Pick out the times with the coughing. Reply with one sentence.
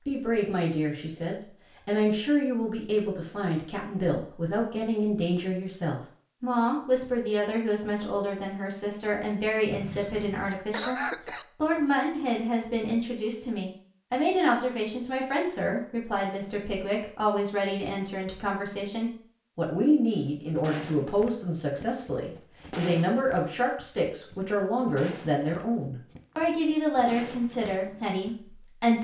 The coughing can be heard from 9.9 to 11.4 s.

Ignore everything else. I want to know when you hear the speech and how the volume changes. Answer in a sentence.
You can hear the speech from 0.1 to 28.9 s, at a steady volume.